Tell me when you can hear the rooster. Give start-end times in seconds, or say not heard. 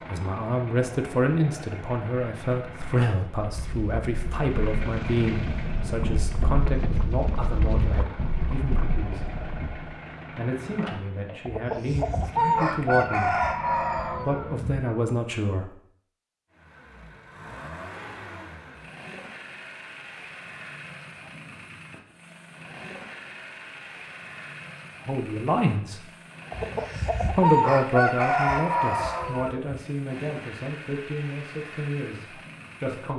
11.4-14.7, 26.5-29.8.